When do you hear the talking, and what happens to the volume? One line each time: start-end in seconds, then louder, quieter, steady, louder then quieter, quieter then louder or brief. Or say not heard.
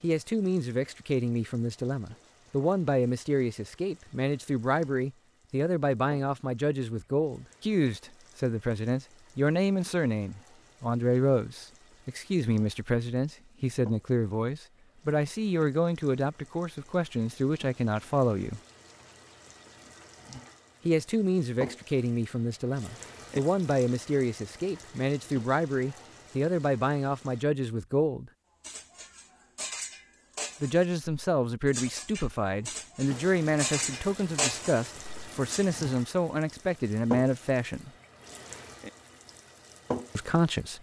0.0-18.6 steady
20.9-28.3 steady
30.6-37.9 steady
40.1-40.7 brief.